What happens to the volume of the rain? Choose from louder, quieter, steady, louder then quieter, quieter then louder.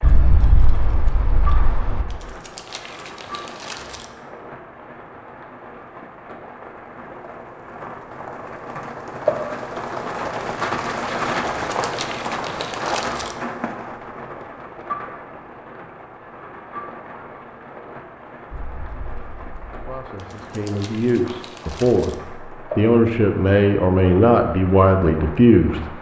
louder then quieter.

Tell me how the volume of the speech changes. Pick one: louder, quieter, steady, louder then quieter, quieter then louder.
louder.